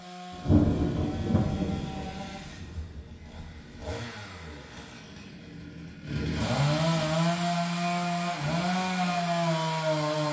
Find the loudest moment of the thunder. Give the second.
1 s.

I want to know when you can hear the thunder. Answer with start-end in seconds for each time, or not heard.
0.3-3.9.